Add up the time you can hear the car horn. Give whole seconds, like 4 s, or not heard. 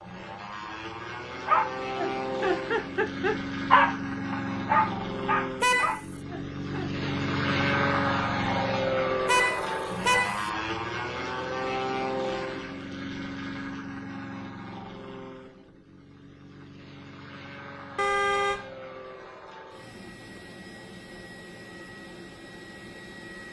2 s.